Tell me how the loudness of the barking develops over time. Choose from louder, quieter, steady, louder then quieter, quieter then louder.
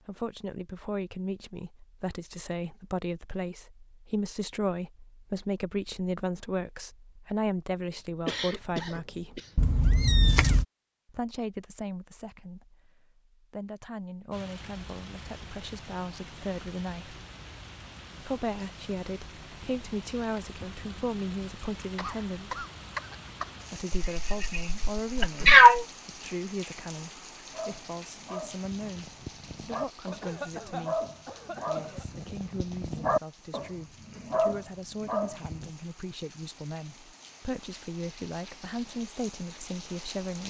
louder.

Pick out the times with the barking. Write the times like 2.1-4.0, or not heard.
27.5-35.7.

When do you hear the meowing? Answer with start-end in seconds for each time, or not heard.
9.6-10.7, 24.1-25.9.